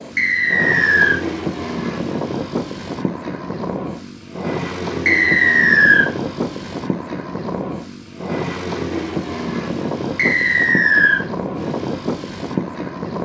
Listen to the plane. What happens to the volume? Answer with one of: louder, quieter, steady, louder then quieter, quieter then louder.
steady.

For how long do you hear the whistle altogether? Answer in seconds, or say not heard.
3 s.